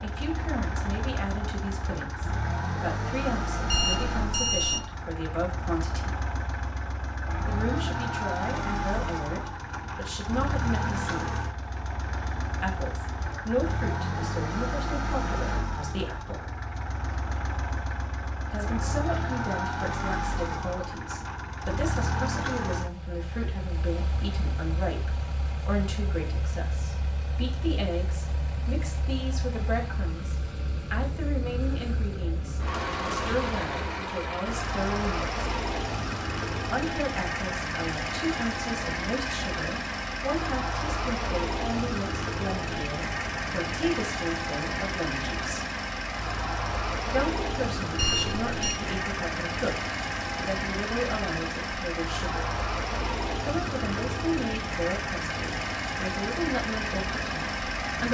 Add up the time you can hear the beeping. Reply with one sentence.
You can hear the beeping for 2 seconds altogether.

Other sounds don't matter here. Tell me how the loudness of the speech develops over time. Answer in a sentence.
The loudness of the speech stays about the same.